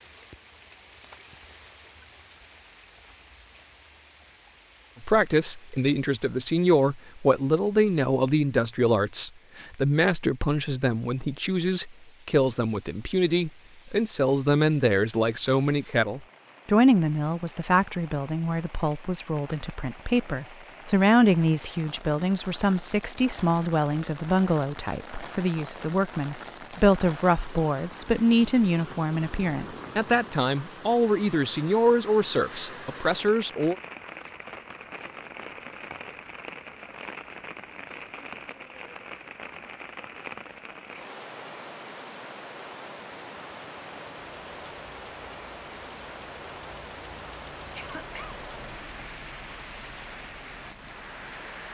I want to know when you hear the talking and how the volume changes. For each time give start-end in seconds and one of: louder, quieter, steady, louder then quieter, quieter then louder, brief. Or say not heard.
5.0-33.8 steady.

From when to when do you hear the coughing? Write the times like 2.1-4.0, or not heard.
47.8-48.4.